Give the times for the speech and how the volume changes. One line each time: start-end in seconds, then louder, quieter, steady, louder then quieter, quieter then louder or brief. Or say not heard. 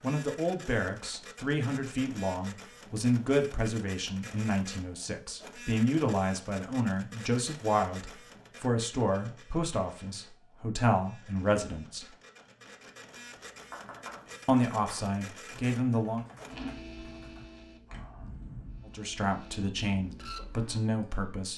0.0-12.1 steady
14.4-16.2 brief
18.9-21.5 brief.